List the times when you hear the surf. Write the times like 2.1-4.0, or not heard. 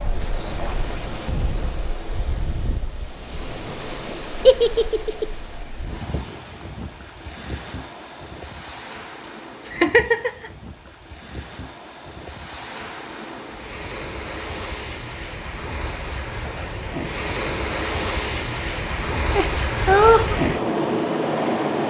0.0-21.8.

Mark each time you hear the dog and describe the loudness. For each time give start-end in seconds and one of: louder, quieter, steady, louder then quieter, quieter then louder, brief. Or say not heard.
not heard.